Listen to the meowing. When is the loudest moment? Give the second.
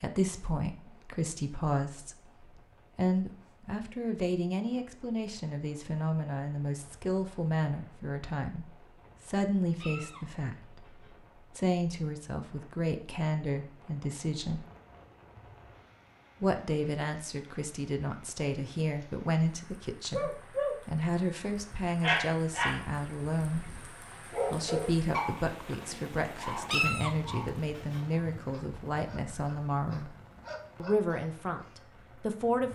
27 s.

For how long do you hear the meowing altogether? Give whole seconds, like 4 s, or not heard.
3 s.